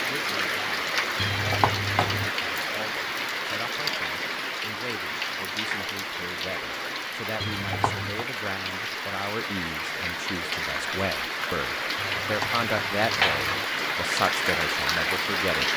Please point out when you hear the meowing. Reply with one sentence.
The meowing can be heard from 1.1 to 2.3 s, from 7.4 to 8.2 s and from 12.2 to 13.5 s.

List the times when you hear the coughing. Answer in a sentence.
You can't hear the coughing here.